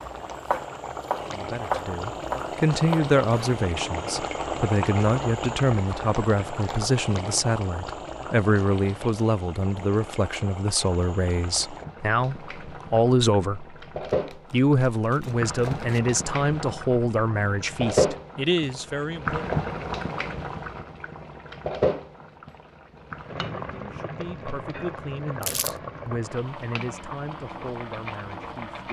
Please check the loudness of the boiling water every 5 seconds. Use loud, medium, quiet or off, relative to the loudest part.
loud, medium, medium, loud, loud, medium.